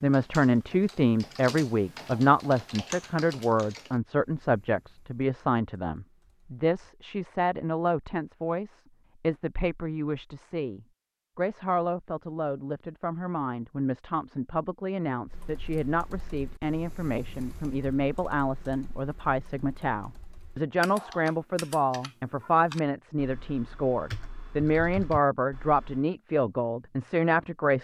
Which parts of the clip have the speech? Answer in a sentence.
You can hear the speech from 0.0 to 27.7 s.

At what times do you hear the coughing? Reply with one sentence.
You can't hear the coughing here.